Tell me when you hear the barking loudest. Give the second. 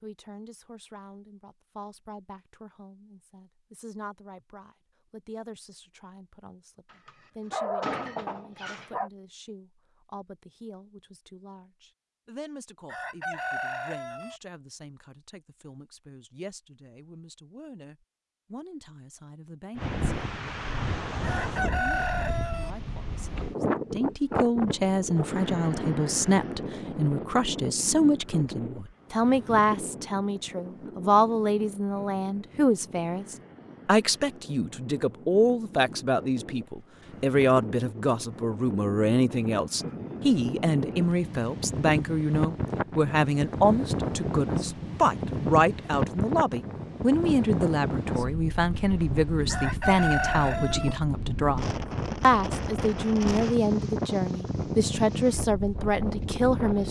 8 s.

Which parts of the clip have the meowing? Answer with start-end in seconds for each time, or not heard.
not heard.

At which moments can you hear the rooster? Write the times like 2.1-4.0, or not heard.
12.8-14.4, 21.2-22.7, 49.5-51.0.